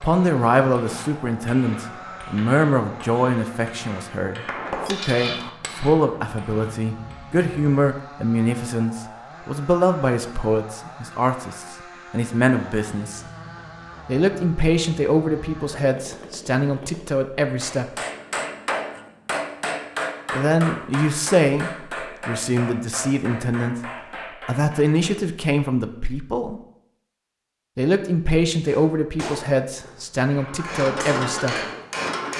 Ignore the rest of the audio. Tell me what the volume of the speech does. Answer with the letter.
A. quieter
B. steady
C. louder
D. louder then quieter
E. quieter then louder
B.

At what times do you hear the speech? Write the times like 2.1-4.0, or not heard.
0.0-13.2, 14.1-17.9, 20.3-26.6, 27.8-31.6.